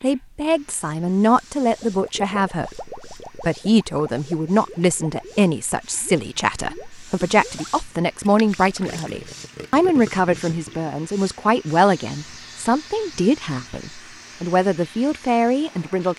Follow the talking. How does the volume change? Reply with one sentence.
The loudness of the talking stays about the same.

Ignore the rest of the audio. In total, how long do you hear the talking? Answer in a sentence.
The talking can be heard for 16 seconds in total.